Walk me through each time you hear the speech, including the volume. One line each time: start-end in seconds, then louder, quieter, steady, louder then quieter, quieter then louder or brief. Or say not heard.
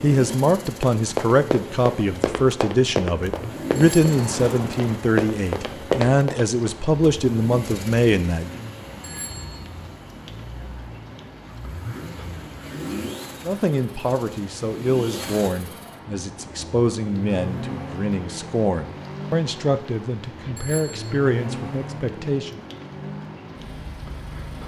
0.0-8.6 steady
13.4-22.6 steady.